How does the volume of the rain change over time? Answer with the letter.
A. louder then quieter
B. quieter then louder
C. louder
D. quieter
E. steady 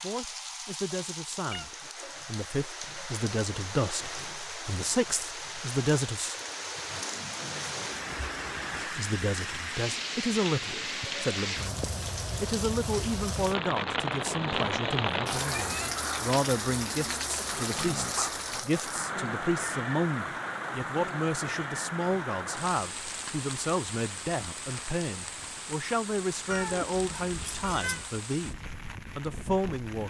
A.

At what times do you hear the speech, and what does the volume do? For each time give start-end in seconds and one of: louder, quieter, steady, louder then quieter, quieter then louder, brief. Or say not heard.
0.0-6.3 louder
8.8-30.0 steady.